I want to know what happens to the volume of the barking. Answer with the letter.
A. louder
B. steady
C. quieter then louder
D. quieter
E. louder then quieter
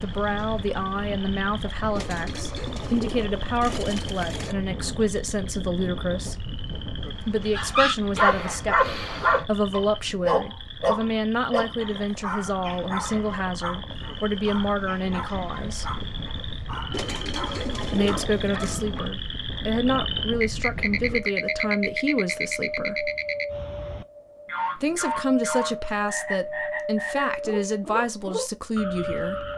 D.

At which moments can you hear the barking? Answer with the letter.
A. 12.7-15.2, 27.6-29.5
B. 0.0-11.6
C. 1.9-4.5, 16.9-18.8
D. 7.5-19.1
D.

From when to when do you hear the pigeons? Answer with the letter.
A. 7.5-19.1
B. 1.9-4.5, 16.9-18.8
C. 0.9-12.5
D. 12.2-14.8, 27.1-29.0
B.